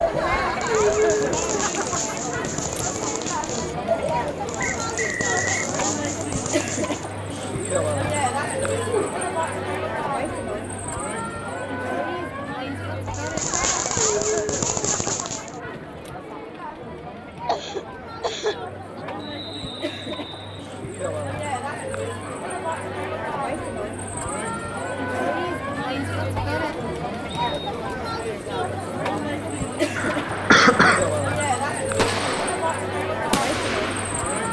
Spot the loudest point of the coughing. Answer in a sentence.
The loudest moment of the coughing is at 31 seconds.